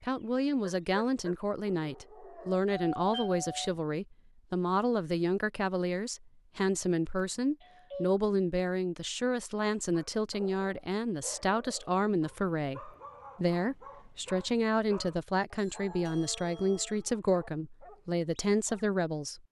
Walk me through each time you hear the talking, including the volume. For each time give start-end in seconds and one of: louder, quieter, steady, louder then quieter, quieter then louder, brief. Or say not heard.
0.0-19.4 steady.